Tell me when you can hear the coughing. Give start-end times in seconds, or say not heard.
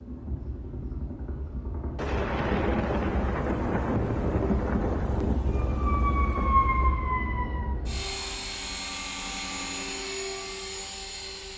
not heard.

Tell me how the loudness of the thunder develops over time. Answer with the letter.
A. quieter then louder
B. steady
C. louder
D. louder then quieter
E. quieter
E.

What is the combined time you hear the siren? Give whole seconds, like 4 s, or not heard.
2 s.